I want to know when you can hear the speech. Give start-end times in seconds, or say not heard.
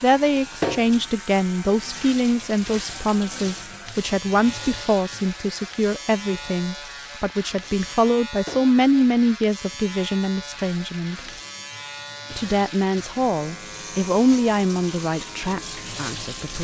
0.0-11.2, 12.3-16.5.